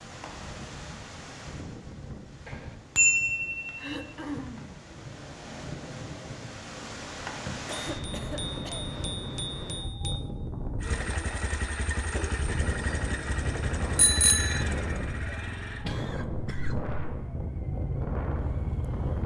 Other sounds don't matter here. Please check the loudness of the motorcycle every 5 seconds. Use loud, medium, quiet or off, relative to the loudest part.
off, off, loud, loud.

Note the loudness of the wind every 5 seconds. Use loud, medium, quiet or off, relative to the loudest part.
medium, loud, loud, loud.